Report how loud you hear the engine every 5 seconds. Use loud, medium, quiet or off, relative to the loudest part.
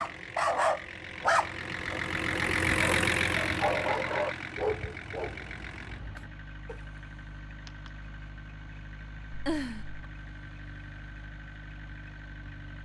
loud, quiet, quiet.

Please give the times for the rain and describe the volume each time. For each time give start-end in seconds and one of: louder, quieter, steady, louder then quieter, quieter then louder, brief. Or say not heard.
not heard.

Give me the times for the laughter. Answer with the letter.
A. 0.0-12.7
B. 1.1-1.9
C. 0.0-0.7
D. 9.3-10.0
D.